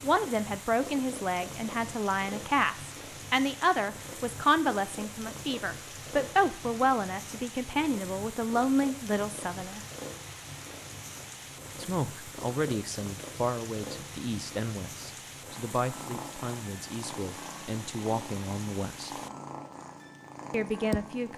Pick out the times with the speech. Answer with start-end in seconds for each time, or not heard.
0.0-9.8, 11.8-19.1, 20.5-21.3.